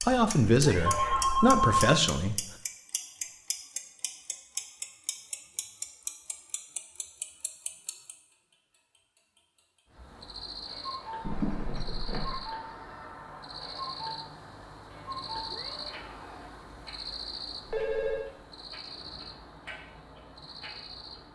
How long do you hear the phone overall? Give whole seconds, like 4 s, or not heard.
4 s.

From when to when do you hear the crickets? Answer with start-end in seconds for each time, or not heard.
9.9-21.2.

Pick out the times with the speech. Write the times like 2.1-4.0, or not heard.
0.0-2.5.